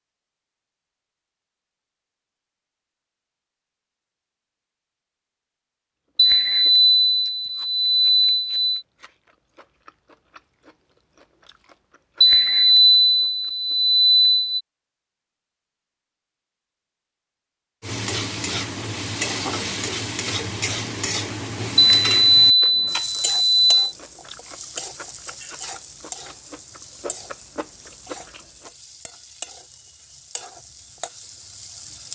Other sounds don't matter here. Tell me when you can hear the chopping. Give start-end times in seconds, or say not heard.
not heard.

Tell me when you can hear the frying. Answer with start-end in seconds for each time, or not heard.
17.8-32.1.